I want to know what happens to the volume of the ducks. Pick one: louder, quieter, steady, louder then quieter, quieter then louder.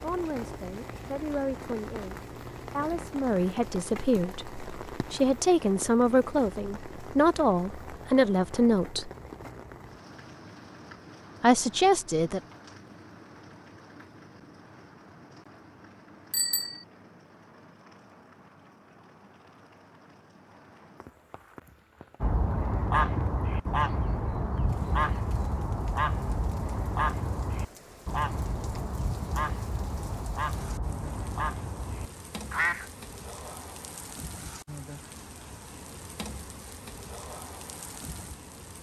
quieter.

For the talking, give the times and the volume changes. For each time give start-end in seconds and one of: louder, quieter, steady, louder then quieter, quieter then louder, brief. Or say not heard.
0.0-9.1 louder
11.4-12.4 brief.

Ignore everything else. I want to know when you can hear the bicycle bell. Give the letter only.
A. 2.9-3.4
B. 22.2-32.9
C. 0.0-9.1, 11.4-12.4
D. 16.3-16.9
D.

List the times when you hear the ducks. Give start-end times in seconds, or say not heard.
22.2-32.9.